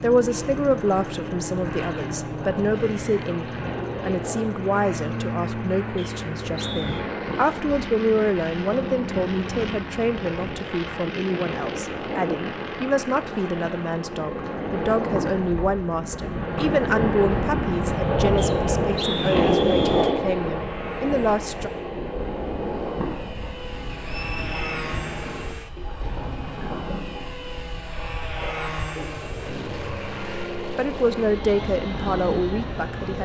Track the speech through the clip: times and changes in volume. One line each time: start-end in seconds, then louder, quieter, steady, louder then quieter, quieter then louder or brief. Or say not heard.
0.0-21.7 steady
30.8-33.1 brief.